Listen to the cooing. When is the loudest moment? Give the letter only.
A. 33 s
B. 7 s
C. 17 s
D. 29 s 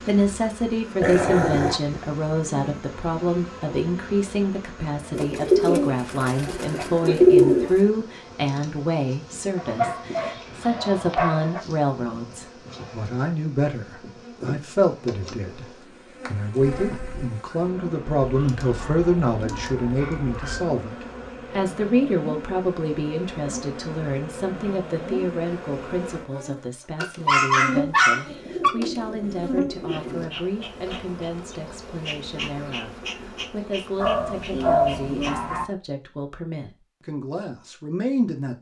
B.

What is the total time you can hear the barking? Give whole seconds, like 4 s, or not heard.
9 s.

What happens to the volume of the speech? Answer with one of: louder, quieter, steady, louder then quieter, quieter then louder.
quieter.